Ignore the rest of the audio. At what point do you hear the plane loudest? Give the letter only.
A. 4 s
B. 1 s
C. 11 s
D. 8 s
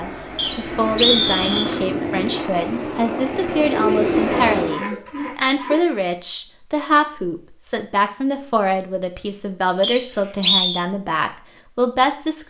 A.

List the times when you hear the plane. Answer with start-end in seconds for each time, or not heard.
0.0-4.8.